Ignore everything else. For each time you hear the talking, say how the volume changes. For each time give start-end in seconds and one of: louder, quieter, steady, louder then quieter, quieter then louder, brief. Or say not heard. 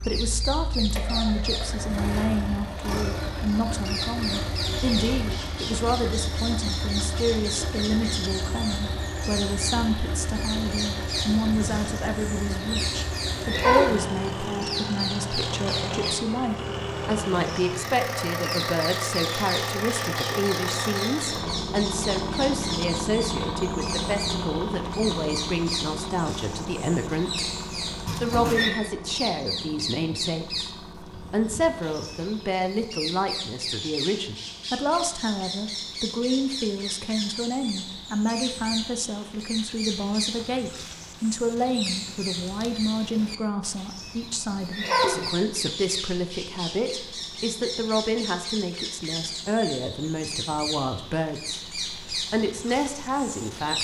0.0-27.5 steady
28.2-53.7 steady.